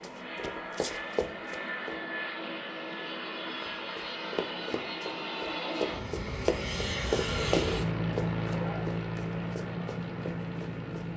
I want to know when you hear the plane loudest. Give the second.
8 s.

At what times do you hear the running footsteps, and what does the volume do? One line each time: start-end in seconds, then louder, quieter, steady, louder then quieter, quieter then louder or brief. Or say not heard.
0.0-2.0 brief
3.6-11.1 louder then quieter.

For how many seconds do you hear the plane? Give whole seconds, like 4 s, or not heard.
11 s.